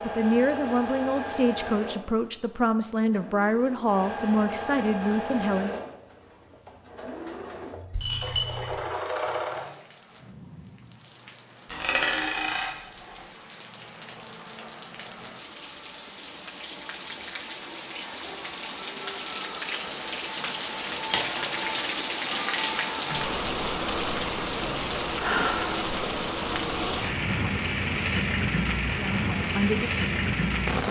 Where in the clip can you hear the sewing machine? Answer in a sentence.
The sewing machine can be heard from 0.0 to 9.8 s.